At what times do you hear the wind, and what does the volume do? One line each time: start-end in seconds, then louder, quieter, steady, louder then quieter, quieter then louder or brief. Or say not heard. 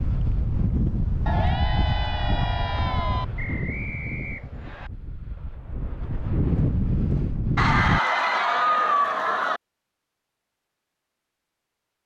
0.0-8.0 quieter then louder.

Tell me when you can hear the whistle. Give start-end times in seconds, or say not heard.
3.4-4.9.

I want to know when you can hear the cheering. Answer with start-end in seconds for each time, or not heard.
1.2-3.2, 7.5-9.6.